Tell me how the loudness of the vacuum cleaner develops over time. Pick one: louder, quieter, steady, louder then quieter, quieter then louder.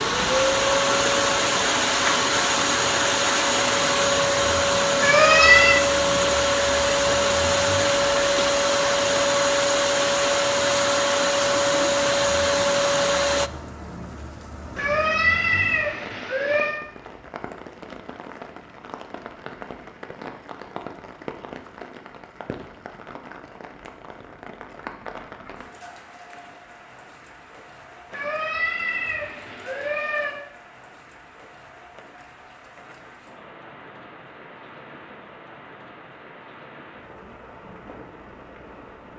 steady.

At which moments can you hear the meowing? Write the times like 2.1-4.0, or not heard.
5.0-5.8, 14.8-16.8, 28.1-30.4.